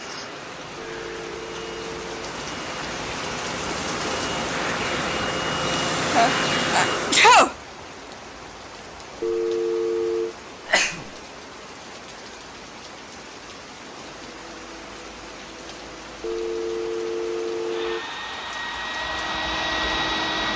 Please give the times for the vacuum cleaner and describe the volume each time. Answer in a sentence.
You can hear the vacuum cleaner from 0.0 to 7.3 s, getting louder; and from 14.0 to 20.5 s, getting louder.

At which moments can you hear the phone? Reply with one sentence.
The phone can be heard from 0.8 to 2.2 s, from 9.2 to 10.3 s and from 16.2 to 18.1 s.